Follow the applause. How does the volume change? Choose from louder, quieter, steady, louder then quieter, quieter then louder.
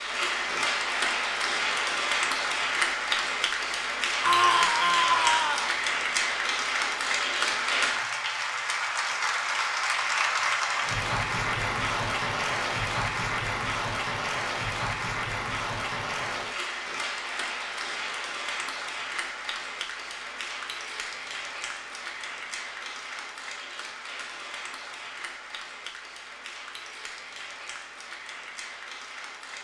quieter.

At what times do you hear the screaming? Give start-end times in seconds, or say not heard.
4.2-5.8.